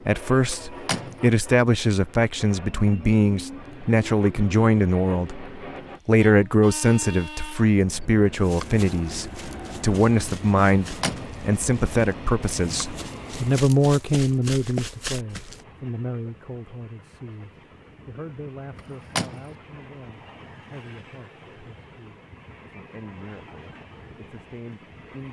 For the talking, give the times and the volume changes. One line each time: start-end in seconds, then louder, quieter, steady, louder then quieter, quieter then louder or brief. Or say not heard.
0.1-25.2 quieter.